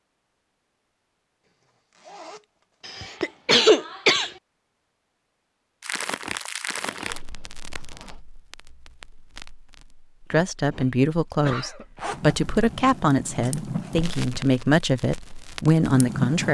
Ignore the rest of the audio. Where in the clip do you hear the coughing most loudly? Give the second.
4 s.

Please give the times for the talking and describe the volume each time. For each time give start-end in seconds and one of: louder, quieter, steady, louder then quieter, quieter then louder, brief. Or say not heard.
10.3-16.4 steady.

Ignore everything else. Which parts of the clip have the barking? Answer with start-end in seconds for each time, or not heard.
not heard.